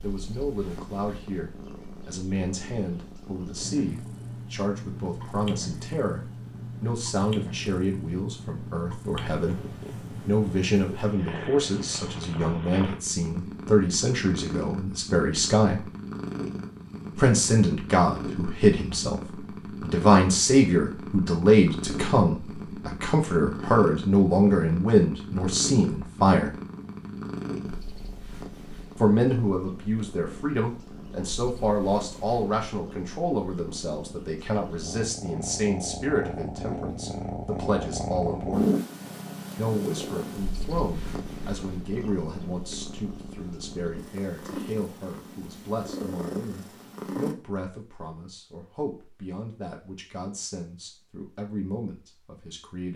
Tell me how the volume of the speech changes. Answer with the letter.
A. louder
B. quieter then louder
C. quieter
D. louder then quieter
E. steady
D.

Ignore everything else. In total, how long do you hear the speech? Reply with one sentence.
The speech can be heard for 48 seconds in total.